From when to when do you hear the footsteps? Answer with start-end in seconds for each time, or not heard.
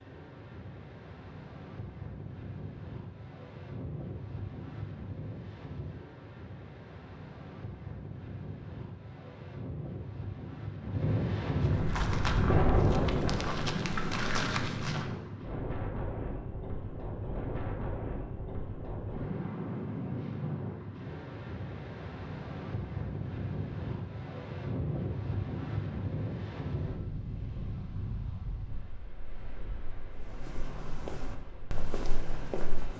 11.6-15.1, 30.1-32.9.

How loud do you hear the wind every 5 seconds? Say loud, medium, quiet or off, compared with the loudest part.
quiet, quiet, loud, medium, medium, medium, quiet.